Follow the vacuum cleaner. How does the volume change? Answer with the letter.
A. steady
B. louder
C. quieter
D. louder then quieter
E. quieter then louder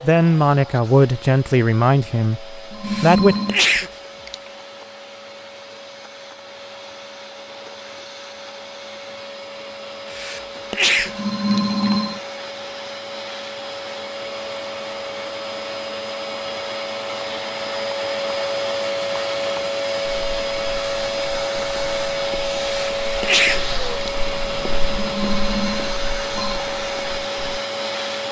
B.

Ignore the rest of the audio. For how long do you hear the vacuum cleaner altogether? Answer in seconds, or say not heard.
28 s.